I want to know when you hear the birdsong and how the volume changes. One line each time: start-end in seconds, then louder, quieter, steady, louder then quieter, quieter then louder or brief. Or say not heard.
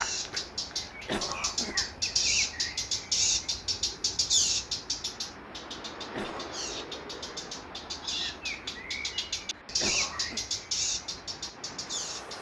0.0-12.3 quieter then louder.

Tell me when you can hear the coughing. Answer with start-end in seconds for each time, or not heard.
1.1-1.9, 6.1-6.5, 9.8-10.4.